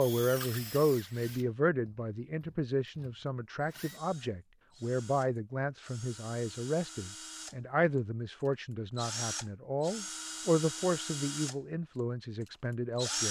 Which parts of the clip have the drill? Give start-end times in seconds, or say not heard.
0.0-7.5, 8.9-13.2.